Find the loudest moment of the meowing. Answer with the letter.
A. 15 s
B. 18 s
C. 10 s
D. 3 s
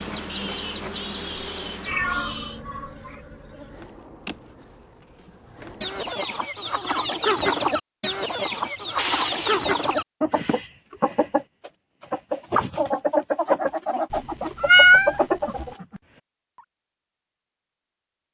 A.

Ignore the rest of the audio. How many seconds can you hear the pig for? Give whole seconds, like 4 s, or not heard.
2 s.